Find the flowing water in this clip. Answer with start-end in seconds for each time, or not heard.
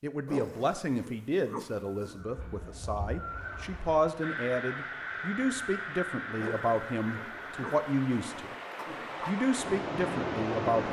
3.1-10.8.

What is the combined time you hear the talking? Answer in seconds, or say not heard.
10 s.